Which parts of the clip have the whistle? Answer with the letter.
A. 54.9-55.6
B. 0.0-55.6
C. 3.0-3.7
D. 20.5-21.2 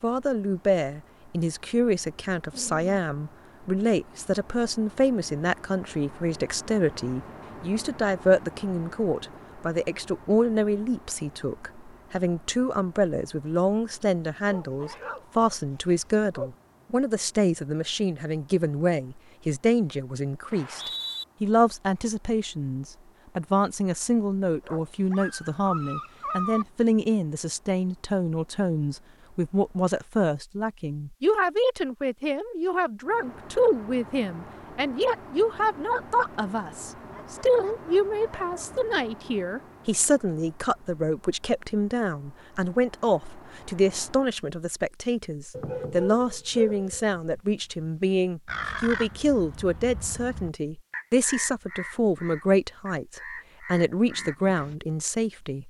D.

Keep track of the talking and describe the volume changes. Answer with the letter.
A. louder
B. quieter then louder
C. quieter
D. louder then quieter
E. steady
E.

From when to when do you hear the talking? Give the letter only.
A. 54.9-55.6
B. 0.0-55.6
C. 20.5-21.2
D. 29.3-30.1
B.